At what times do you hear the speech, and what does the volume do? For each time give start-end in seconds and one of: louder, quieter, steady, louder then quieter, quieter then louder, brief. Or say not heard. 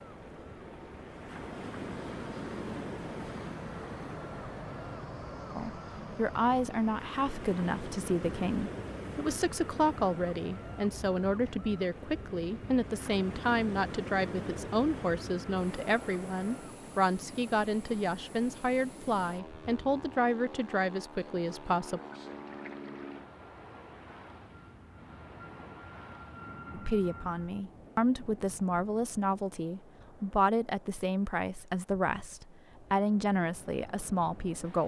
5.5-22.0 steady
26.7-34.8 steady.